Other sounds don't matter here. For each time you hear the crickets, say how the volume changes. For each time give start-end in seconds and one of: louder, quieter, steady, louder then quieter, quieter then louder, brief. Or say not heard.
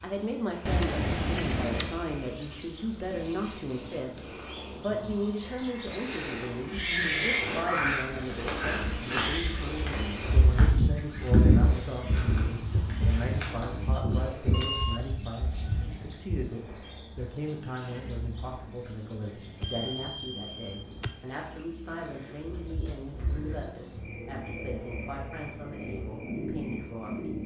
0.0-27.4 louder then quieter.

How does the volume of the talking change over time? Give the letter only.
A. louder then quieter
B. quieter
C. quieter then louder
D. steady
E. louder
B.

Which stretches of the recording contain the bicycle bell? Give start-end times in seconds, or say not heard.
0.7-2.0, 14.5-15.0, 19.6-21.2.